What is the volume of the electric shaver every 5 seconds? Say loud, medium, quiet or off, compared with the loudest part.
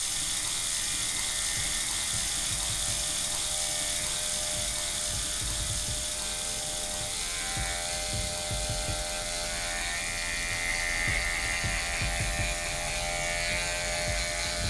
medium, medium, loud.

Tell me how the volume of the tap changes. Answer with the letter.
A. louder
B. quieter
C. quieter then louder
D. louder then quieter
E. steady
B.